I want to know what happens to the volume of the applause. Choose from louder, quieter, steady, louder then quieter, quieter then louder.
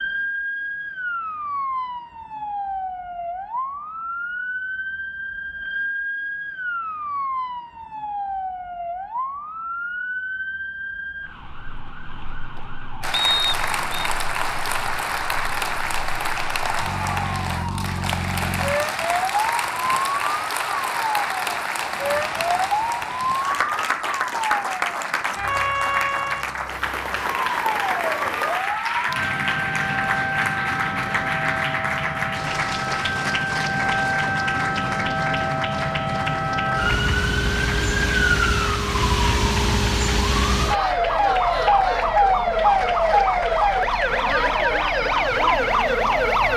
quieter.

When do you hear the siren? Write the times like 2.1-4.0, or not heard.
0.0-46.5.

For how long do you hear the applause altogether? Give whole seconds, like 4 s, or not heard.
33 s.